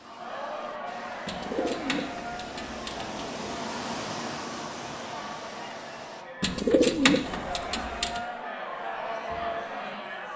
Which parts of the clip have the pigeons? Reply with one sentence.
The pigeons can be heard from 1.2 to 3.2 s and from 6.4 to 8.2 s.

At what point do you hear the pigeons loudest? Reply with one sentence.
The volume of the pigeons peaks at 7 seconds.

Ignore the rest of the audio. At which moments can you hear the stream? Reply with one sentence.
The stream can be heard from 0.0 to 6.2 s.